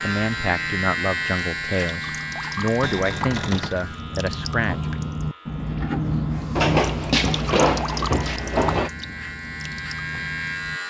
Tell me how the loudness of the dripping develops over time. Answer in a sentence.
The volume of the dripping goes up, then down.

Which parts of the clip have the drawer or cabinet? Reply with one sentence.
You can hear the drawer or cabinet from 2.8 to 3.9 s and from 6.5 to 8.9 s.